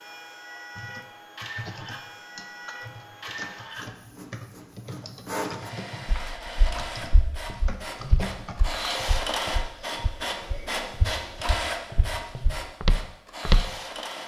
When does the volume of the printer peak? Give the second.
9 s.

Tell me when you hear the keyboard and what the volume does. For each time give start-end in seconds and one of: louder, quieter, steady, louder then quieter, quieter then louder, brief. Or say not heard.
0.8-8.6 steady.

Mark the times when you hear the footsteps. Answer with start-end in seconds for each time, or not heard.
6.0-13.7.